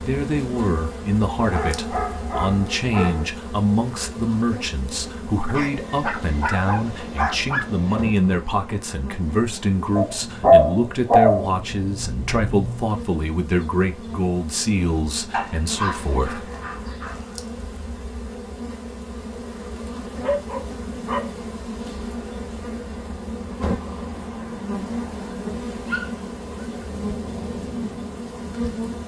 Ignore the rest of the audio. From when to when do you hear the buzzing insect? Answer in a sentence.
The buzzing insect can be heard from 0.0 to 29.0 s.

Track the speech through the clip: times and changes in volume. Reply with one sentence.
You can hear the speech from 0.0 to 16.5 s, at a steady volume.